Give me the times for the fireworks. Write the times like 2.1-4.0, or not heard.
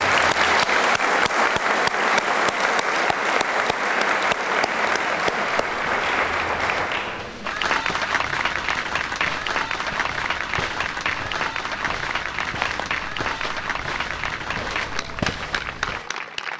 not heard.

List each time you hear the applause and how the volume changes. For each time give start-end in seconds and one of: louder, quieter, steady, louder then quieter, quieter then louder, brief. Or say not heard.
0.0-16.5 quieter.